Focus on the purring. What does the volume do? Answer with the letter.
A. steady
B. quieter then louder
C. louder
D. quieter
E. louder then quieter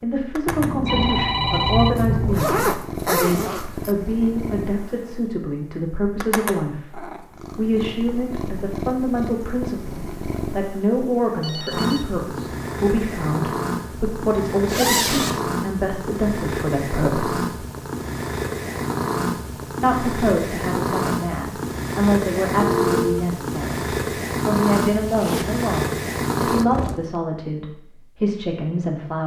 C.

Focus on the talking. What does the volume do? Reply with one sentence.
The loudness of the talking stays about the same.